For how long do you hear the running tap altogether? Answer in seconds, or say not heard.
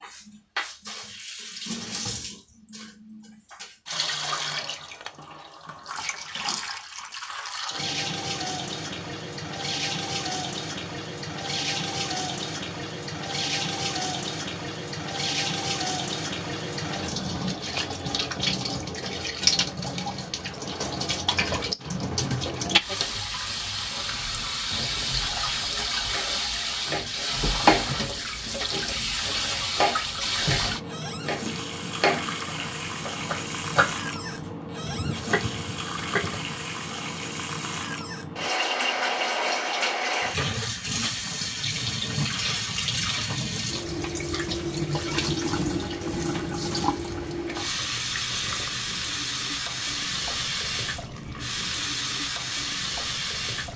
54 s.